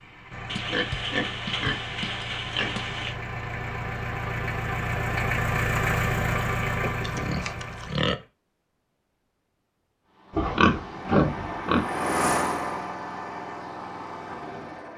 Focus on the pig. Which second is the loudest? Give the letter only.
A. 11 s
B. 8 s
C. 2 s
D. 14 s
A.